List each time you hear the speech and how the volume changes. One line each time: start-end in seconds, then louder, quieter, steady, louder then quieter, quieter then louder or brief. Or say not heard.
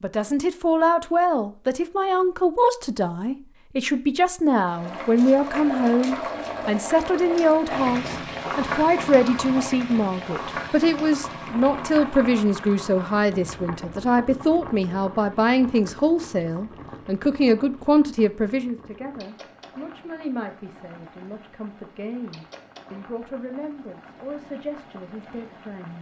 0.0-25.9 quieter.